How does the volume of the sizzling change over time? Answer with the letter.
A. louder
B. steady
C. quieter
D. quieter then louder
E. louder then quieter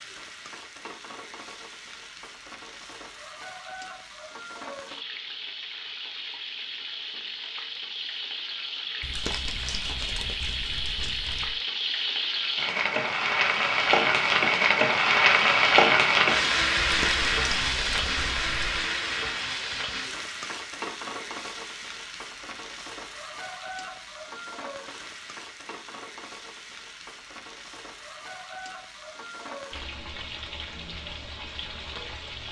E.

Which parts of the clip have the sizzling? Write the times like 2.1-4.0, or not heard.
0.0-32.4.